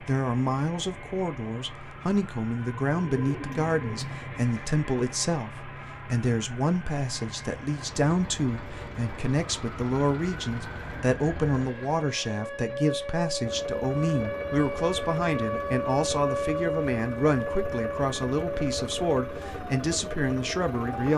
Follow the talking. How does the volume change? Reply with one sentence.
The loudness of the talking stays about the same.